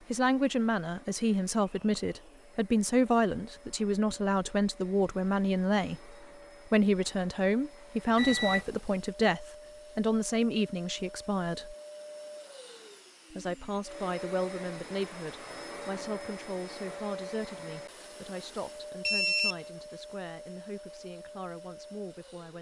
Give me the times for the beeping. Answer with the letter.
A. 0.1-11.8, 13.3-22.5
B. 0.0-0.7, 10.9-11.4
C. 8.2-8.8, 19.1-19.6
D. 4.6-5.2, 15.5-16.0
C.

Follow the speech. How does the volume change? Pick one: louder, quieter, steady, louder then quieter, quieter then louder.
quieter.